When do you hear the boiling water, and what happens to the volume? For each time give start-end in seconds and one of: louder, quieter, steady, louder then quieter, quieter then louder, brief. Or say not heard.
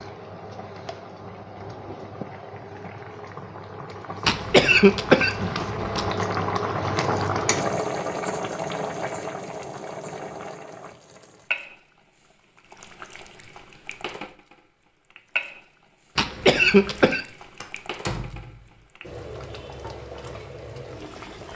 0.0-21.5 louder then quieter.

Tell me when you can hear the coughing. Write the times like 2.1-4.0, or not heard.
4.2-6.1, 16.1-17.2.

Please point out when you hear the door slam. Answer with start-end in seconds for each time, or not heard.
17.6-18.7.